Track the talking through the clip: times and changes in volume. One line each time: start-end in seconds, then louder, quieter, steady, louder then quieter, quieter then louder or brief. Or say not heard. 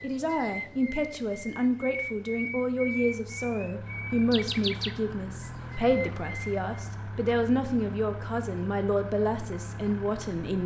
0.0-10.6 steady.